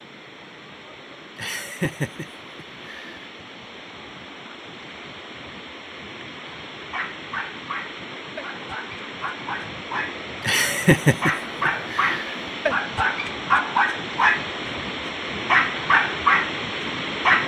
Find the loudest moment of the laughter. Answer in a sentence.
The volume of the laughter peaks at 11 seconds.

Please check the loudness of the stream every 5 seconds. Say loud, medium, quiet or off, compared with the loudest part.
quiet, medium, loud, loud.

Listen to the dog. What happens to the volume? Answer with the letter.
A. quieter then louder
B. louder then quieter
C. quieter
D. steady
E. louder
E.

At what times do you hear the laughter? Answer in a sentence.
You can hear the laughter from 1.4 to 3.2 s and from 10.4 to 12.3 s.